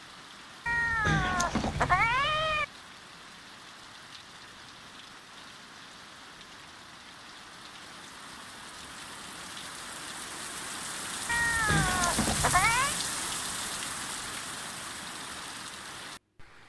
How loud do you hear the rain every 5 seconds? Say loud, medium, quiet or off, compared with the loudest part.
quiet, medium, loud, medium.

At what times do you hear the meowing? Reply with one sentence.
You can hear the meowing from 0.7 to 2.6 s and from 11.2 to 12.9 s.